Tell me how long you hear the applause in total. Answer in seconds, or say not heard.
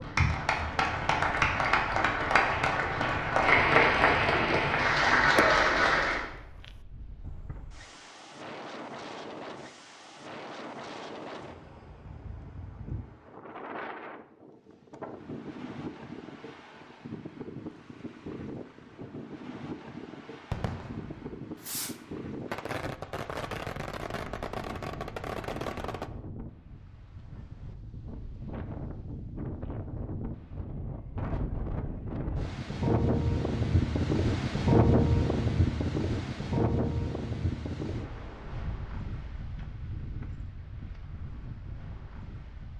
6 s.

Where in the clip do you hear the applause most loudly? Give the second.
4 s.